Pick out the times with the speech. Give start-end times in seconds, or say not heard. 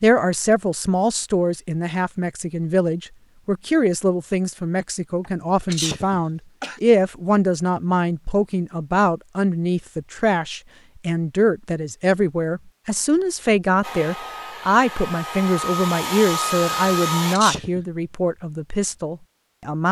0.0-19.8.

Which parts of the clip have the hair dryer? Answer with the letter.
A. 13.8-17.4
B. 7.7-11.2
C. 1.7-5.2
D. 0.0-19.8
A.